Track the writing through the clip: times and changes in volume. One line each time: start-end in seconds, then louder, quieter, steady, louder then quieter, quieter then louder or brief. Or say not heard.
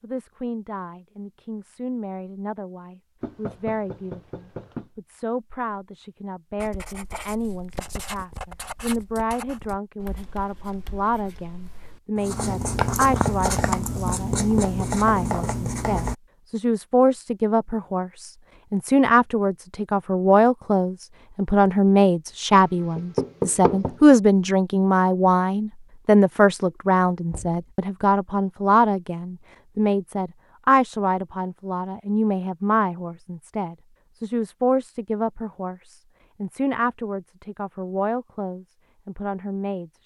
6.5-16.1 quieter then louder.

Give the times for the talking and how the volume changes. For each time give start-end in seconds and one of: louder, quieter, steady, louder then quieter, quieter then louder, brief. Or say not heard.
0.0-40.0 louder then quieter.